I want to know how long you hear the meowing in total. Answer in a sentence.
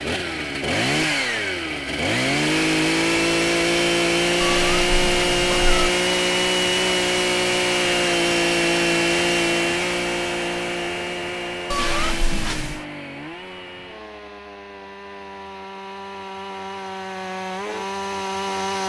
You can hear the meowing for 3 seconds altogether.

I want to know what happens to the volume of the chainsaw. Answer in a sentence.
The loudness of the chainsaw goes down.